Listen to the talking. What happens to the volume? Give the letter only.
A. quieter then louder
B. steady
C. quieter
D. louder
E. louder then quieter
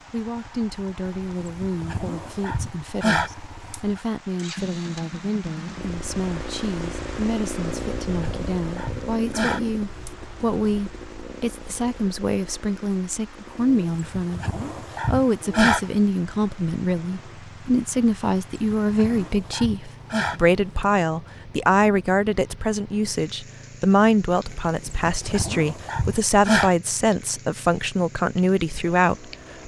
D.